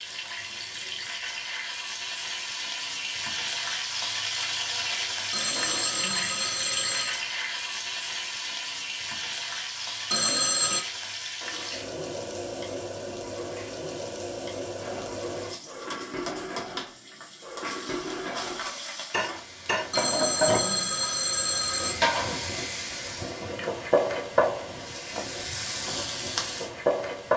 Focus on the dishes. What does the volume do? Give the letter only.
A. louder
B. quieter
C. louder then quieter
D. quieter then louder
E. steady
A.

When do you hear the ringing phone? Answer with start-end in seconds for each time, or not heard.
5.3-7.2, 10.1-10.8, 19.9-21.9.